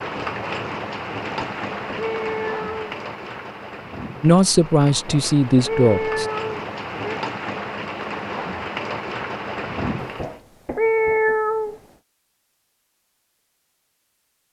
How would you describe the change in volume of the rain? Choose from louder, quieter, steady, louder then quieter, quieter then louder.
quieter then louder.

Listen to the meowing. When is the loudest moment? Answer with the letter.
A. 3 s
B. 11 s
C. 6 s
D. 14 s
B.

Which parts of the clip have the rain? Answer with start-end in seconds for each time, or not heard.
0.0-10.4.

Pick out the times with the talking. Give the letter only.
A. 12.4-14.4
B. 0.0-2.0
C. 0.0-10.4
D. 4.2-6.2
D.